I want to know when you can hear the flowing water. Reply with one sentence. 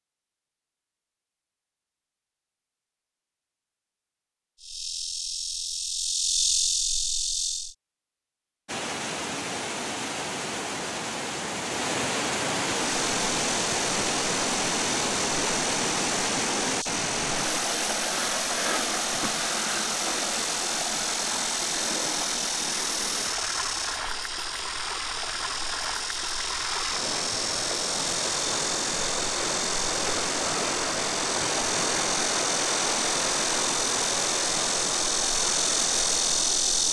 The flowing water can be heard from 8.7 to 36.8 s.